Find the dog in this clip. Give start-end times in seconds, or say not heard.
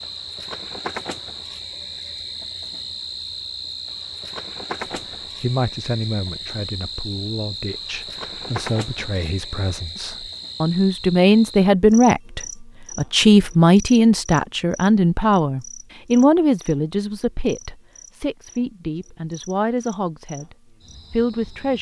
not heard.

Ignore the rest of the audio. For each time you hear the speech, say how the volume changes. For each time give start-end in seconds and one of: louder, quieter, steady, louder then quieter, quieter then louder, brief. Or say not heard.
5.0-21.7 louder then quieter.